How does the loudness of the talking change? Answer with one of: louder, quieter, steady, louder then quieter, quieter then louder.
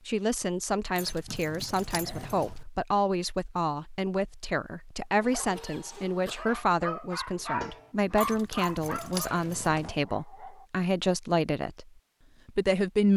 steady.